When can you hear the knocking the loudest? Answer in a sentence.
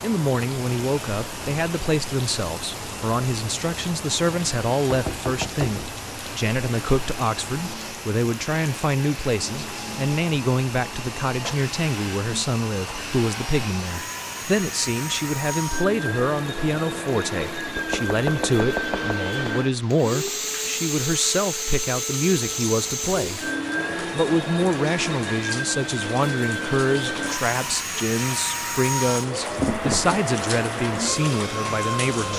The volume of the knocking peaks at 30 seconds.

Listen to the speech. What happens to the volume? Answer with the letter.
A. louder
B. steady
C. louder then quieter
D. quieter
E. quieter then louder
B.